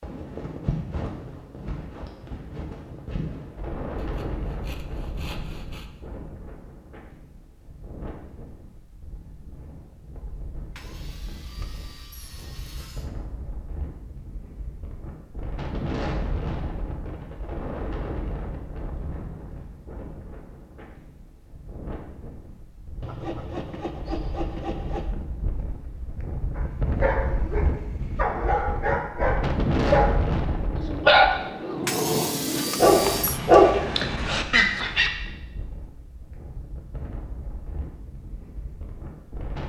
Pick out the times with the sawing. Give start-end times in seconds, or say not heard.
4.0-5.9, 10.8-13.1, 23.0-25.1, 31.9-33.4.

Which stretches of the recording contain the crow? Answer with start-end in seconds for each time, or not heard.
not heard.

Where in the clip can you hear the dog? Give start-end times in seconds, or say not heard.
26.6-35.1.